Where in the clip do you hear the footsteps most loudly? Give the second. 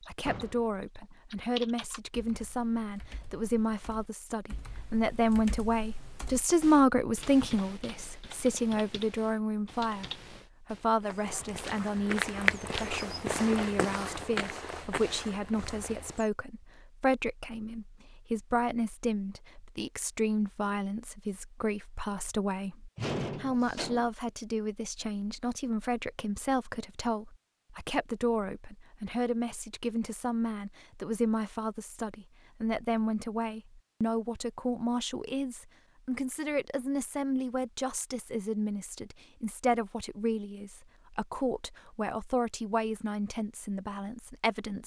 12 s.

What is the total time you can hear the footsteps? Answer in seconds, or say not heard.
5 s.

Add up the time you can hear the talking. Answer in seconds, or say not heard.
45 s.